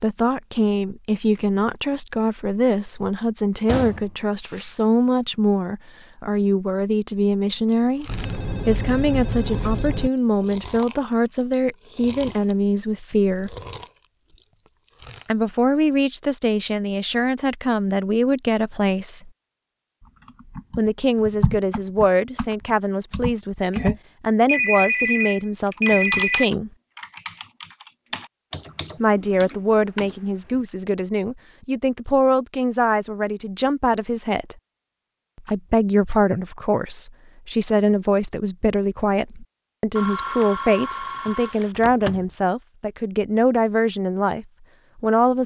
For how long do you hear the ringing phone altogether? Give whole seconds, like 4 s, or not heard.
6 s.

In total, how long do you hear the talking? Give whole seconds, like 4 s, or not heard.
39 s.